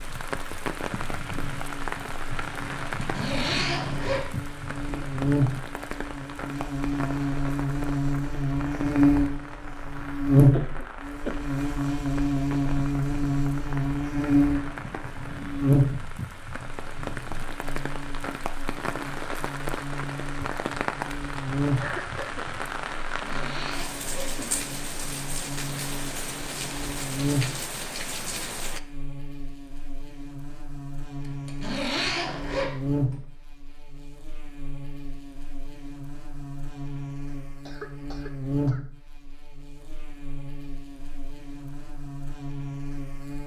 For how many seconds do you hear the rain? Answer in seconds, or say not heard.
29 s.